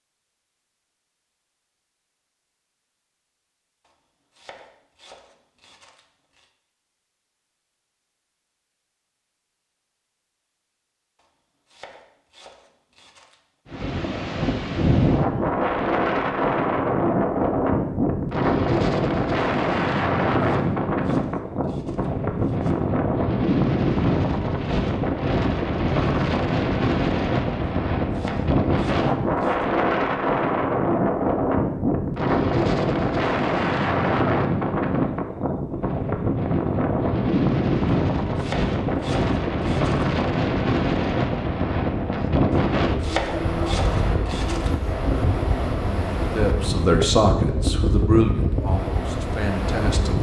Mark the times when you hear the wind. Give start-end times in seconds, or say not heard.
13.7-50.1.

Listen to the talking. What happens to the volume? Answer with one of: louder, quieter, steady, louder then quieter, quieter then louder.
quieter.